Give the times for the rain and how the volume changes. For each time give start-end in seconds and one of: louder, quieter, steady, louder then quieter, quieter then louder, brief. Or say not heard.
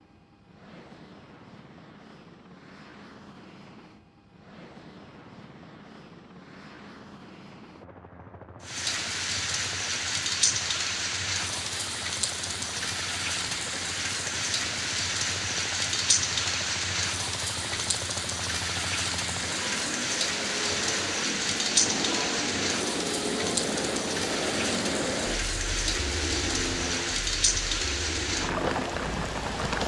8.6-29.8 steady.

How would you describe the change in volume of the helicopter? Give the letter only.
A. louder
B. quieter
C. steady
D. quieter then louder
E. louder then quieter
A.